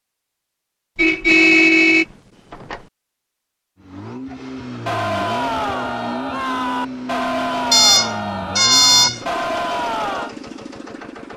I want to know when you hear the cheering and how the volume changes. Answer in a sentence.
The cheering can be heard from 4.8 to 10.3 s, at a steady volume.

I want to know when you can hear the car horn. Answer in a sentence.
You can hear the car horn from 0.9 to 2.8 s and from 7.7 to 9.2 s.